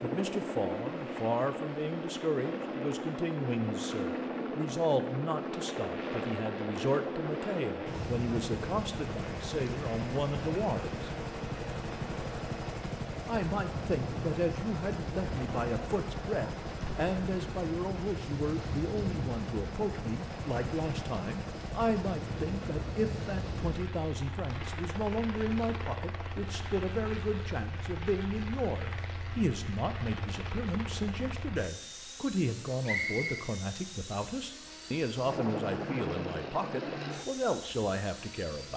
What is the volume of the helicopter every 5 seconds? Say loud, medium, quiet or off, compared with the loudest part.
loud, loud, loud, loud, loud, medium, medium, loud.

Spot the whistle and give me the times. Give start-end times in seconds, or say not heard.
32.9-33.4.